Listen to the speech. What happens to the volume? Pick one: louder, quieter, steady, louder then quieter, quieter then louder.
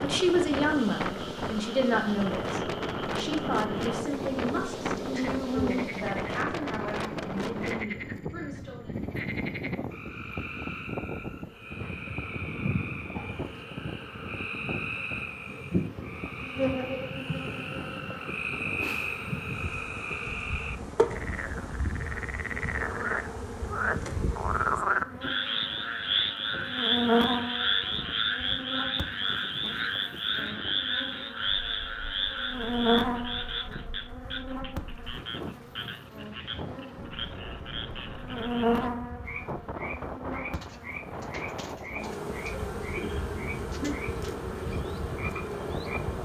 quieter.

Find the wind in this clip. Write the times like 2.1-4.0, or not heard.
0.0-46.2.